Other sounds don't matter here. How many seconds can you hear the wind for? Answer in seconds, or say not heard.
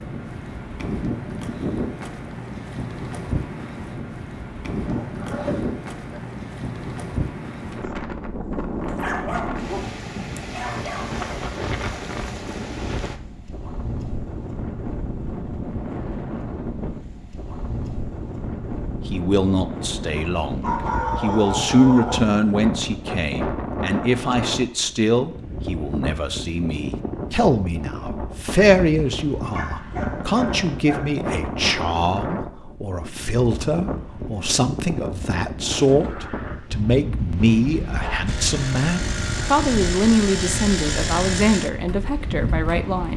43 s.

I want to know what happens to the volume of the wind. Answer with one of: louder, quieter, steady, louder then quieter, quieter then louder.
steady.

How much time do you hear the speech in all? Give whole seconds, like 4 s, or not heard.
24 s.